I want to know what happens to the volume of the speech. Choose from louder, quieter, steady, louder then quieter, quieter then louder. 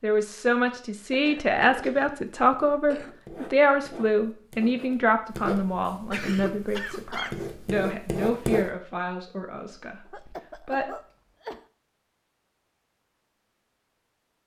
quieter.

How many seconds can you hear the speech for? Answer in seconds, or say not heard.
11 s.